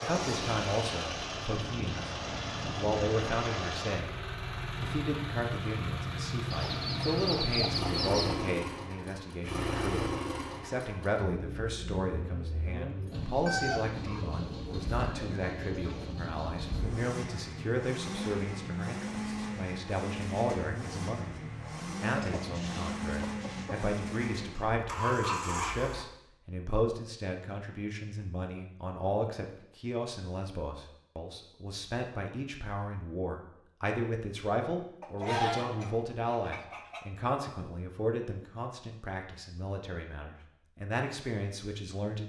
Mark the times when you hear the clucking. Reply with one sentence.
The clucking can be heard from 6.5 to 8.5 s, from 13.4 to 16.1 s, from 22.1 to 23.8 s and from 35.0 to 37.0 s.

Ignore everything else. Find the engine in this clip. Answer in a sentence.
The engine can be heard from 0.0 to 26.1 s.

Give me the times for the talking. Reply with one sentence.
You can hear the talking from 0.0 to 2.1 s, from 2.8 to 4.2 s, from 4.8 to 21.4 s and from 22.0 to 42.2 s.